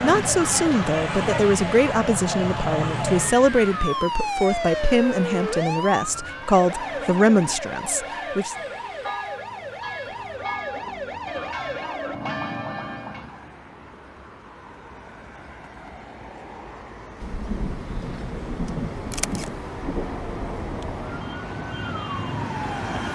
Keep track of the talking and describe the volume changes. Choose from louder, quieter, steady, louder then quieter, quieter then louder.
steady.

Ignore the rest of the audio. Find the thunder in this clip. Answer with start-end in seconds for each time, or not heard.
17.2-21.2.